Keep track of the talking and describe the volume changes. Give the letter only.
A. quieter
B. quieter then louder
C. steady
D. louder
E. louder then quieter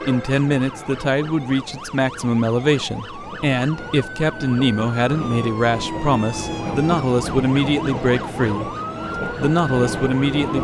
C.